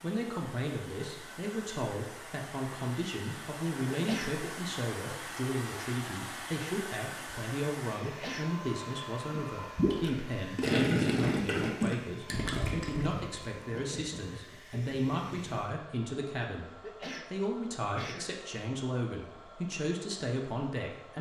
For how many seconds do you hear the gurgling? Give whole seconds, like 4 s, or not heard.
6 s.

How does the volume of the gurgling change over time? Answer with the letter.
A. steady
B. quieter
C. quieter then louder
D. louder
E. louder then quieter
B.